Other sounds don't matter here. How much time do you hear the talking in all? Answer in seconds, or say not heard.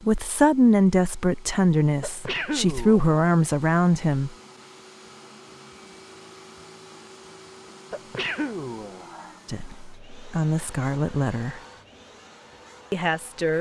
7 s.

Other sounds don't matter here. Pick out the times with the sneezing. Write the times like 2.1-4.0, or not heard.
2.0-3.0, 7.9-9.4.